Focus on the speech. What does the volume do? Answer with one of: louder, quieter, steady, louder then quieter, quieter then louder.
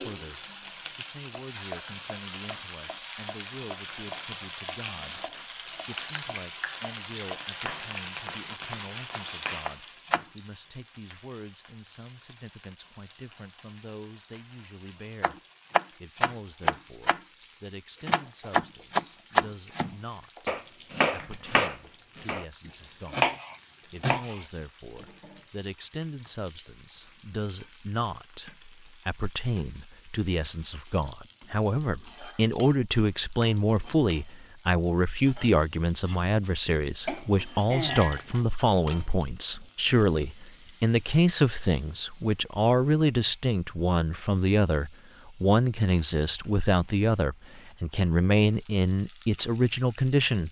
louder.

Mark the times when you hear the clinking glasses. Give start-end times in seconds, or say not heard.
37.0-38.5.